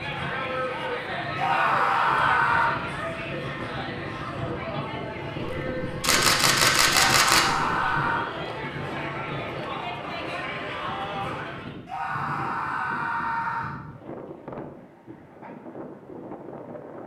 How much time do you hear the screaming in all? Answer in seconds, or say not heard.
5 s.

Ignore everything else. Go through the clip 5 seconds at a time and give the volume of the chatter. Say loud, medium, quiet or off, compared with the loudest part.
loud, loud, loud, off.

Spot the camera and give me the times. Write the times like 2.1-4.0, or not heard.
5.4-7.8.